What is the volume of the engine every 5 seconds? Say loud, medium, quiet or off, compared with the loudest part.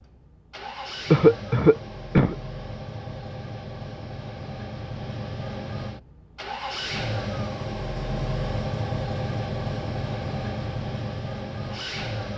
medium, loud, loud.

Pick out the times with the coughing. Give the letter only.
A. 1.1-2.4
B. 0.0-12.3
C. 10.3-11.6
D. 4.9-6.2
A.